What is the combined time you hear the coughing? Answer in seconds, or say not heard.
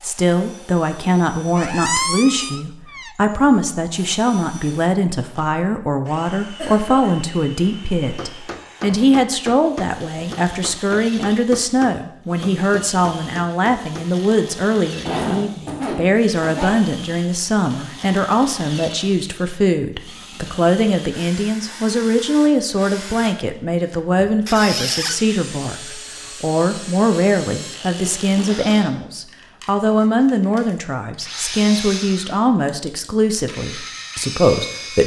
3 s.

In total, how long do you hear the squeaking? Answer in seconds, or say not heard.
2 s.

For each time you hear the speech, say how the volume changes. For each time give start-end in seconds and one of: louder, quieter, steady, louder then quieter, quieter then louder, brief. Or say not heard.
0.0-35.0 steady.